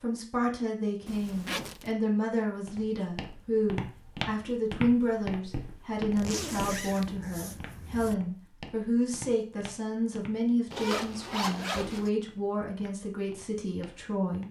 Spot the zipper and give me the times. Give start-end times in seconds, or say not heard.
1.1-1.9, 6.2-8.2, 10.7-12.1.